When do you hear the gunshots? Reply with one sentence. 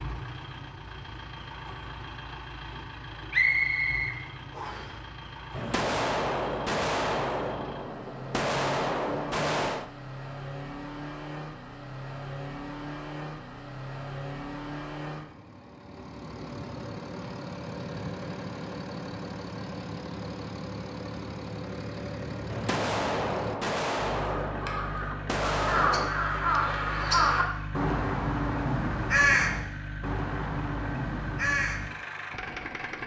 The gunshots can be heard from 5.5 to 9.9 s and from 22.4 to 26.1 s.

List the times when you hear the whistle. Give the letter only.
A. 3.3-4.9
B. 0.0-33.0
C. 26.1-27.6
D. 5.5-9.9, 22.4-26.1
A.